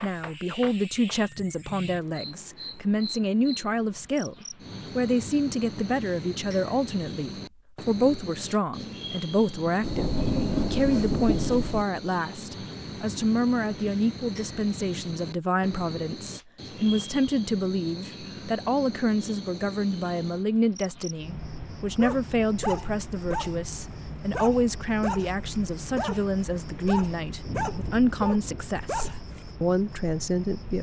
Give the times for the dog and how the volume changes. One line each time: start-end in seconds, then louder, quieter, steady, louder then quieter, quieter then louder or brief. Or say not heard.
21.9-29.4 steady.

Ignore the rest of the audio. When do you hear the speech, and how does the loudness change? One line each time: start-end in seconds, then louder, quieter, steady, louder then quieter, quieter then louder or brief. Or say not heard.
0.0-30.7 steady.